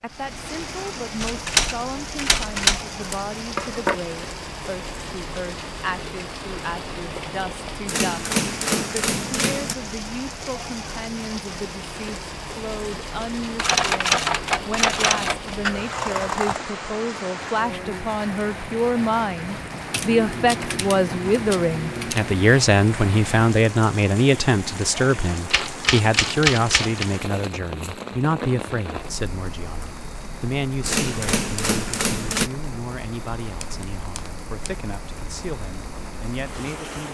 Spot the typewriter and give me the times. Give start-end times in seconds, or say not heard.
1.2-2.9, 7.8-9.8, 13.6-15.6, 19.9-22.4, 25.5-27.1, 30.8-32.5.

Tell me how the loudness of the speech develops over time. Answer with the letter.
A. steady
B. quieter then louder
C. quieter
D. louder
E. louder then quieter
E.